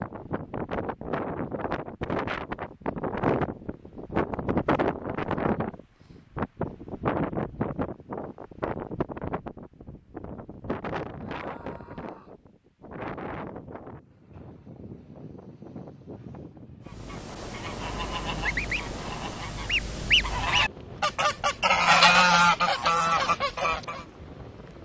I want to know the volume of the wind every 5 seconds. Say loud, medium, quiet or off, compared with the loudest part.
loud, loud, medium, quiet, quiet.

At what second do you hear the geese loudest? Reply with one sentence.
The loudest moment of the geese is at 22 seconds.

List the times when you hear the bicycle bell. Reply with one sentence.
You can't hear the bicycle bell here.